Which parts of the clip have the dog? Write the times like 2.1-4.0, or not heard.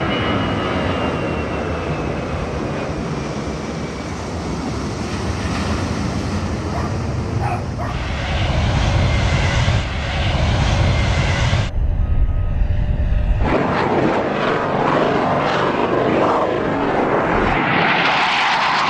6.7-8.1.